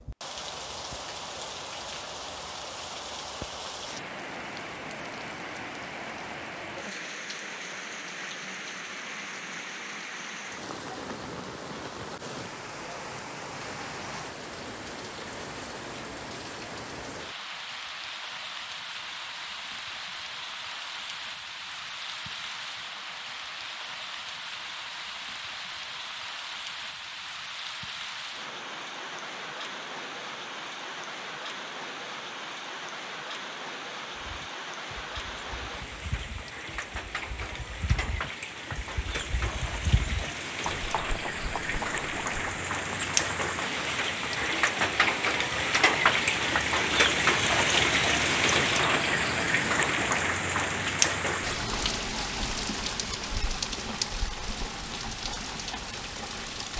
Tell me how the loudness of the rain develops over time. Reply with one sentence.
The volume of the rain goes up.